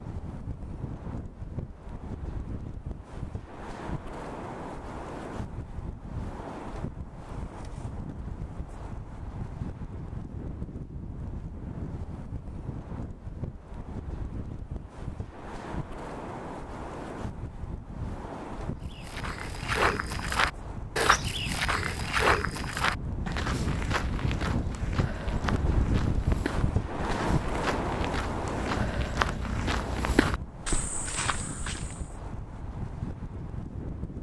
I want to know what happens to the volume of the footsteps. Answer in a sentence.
The loudness of the footsteps goes down, then up.